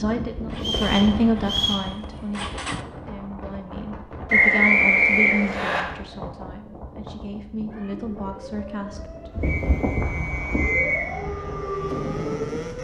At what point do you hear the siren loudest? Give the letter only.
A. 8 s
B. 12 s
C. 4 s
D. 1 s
B.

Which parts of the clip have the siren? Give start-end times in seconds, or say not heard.
7.7-12.7.